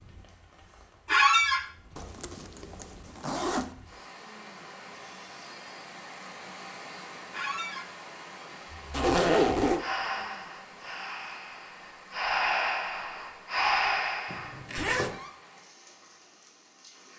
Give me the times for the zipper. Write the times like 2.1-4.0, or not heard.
1.9-3.7, 8.9-9.8, 14.2-15.2.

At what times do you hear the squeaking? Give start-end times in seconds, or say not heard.
1.1-1.6, 7.3-7.8, 14.8-15.3.